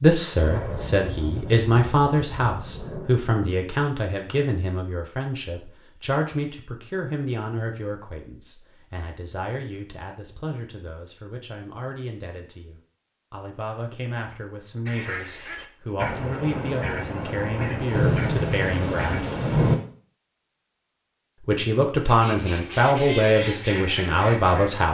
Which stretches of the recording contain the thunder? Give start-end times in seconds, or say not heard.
0.3-3.1, 17.9-19.8.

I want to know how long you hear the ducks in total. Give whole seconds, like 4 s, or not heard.
8 s.